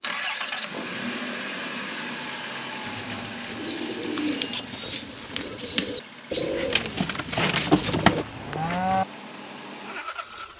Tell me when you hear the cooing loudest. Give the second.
8 s.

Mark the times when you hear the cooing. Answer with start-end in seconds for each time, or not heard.
2.8-8.2.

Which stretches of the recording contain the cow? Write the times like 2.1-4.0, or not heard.
7.9-9.1.